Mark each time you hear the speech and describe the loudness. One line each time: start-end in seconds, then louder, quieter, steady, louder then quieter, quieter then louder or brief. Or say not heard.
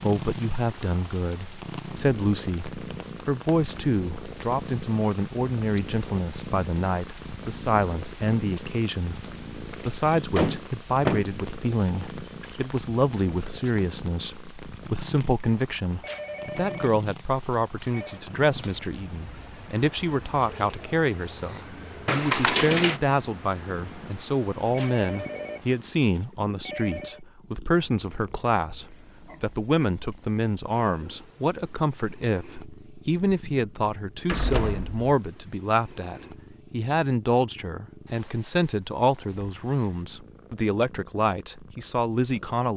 0.0-42.7 steady.